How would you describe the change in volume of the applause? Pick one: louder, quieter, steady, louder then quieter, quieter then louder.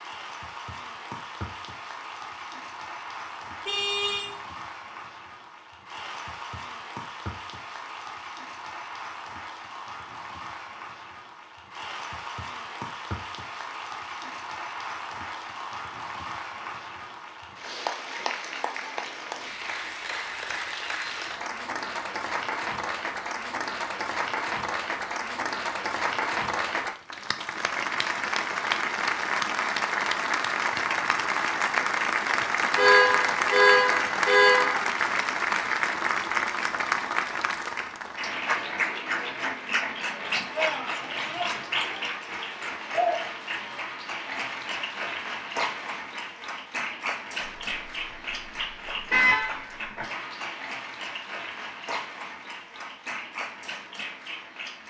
louder then quieter.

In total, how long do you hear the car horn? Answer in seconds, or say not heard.
5 s.